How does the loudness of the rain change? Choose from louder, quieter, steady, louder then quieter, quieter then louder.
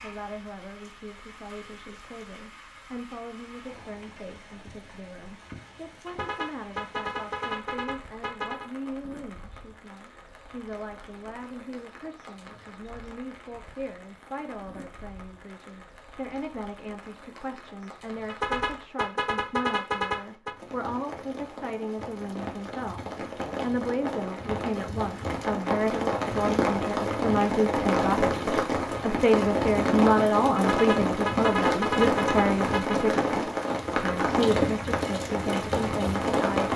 louder.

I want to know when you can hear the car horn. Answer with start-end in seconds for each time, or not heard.
6.0-8.7, 18.2-20.6, 30.6-33.0.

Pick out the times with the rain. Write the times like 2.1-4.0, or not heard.
0.0-36.7.